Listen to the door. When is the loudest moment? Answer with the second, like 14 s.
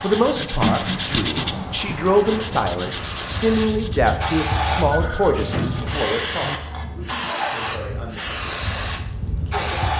1 s.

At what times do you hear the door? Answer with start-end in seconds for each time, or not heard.
0.6-1.8, 5.3-6.5.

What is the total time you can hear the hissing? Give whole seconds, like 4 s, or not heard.
10 s.